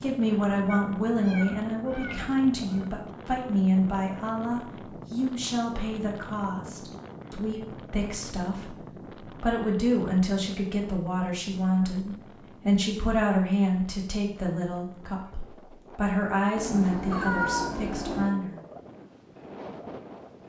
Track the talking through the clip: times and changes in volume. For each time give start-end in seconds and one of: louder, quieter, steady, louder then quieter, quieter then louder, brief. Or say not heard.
0.0-8.8 quieter
9.4-18.6 steady.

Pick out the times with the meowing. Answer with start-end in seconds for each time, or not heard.
0.7-2.9, 16.6-18.3.